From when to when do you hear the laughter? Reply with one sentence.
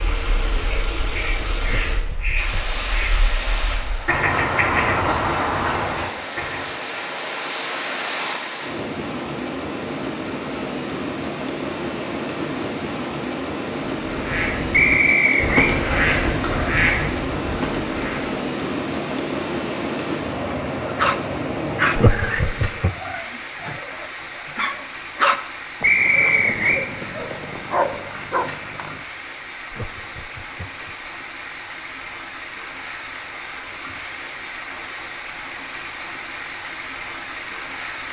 You can hear the laughter from 1.6 to 2.8 s, from 21.9 to 22.9 s and from 29.7 to 31.1 s.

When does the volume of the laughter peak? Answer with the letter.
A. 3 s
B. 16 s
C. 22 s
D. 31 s
C.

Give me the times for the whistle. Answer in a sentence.
You can hear the whistle from 14.7 to 15.8 s and from 25.8 to 26.9 s.